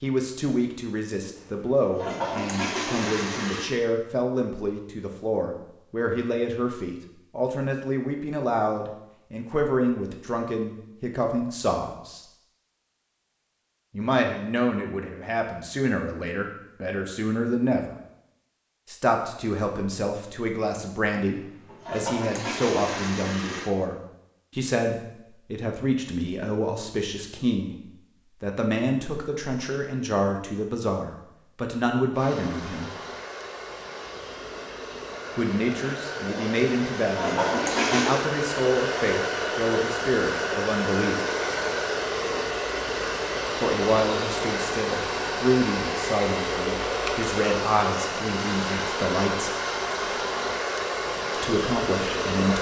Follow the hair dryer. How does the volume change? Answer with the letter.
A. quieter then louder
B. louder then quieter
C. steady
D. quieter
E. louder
E.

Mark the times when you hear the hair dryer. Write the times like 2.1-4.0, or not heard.
32.1-52.5.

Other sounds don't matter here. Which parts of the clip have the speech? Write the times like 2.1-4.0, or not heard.
0.0-12.2, 13.9-17.9, 18.9-32.9, 35.4-41.2, 43.5-49.5, 51.3-52.5.